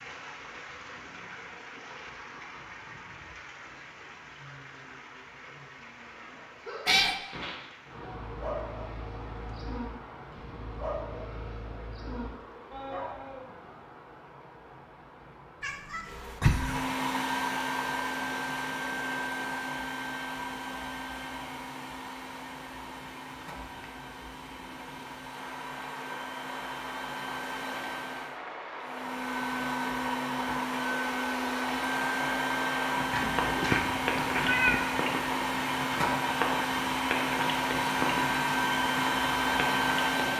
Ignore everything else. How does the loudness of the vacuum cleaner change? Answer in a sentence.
The loudness of the vacuum cleaner goes down, then up.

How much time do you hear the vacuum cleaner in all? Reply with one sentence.
You can hear the vacuum cleaner for 24 seconds altogether.